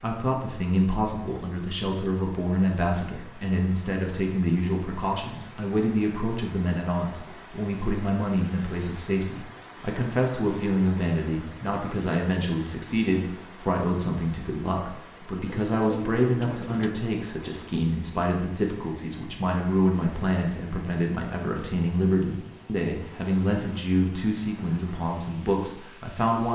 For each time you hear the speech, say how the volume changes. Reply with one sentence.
The speech can be heard from 0.0 to 26.5 s, at a steady volume.